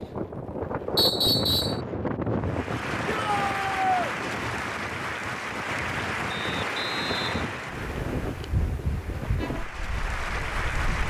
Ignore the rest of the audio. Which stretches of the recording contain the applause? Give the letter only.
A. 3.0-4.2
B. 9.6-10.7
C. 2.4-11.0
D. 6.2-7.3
C.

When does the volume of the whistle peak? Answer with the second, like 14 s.
1 s.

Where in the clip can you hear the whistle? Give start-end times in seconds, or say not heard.
0.9-1.8, 6.3-8.3.